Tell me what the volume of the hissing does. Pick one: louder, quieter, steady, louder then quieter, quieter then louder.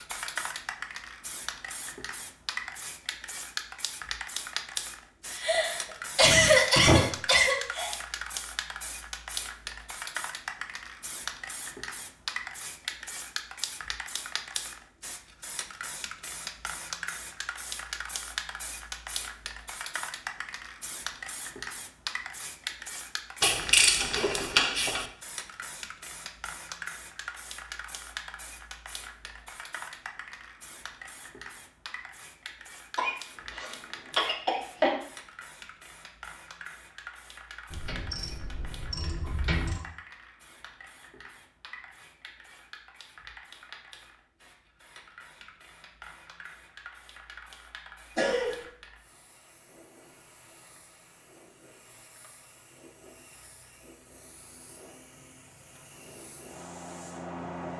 quieter.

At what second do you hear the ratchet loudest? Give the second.
24 s.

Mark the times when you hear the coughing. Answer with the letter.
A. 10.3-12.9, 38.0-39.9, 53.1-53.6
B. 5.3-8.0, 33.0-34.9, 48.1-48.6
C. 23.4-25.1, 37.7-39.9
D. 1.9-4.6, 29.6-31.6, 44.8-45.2
B.